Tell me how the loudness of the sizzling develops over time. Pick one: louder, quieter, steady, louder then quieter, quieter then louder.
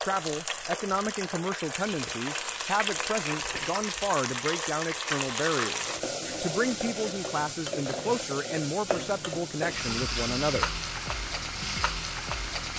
steady.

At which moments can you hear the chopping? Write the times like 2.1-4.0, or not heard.
not heard.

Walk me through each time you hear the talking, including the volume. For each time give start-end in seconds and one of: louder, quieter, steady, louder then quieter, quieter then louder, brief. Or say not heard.
0.0-10.7 steady.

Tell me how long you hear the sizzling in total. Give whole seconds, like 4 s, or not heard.
13 s.